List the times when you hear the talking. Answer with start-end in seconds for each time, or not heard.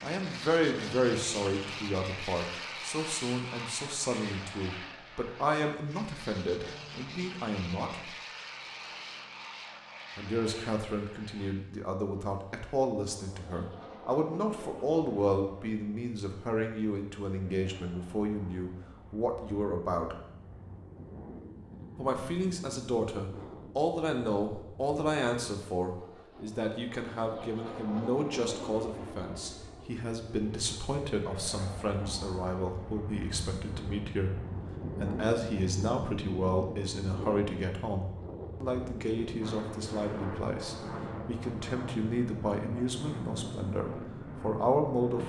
0.0-8.2, 10.2-20.1, 21.9-34.3, 35.0-45.2.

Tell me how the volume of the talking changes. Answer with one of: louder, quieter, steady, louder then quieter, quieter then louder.
steady.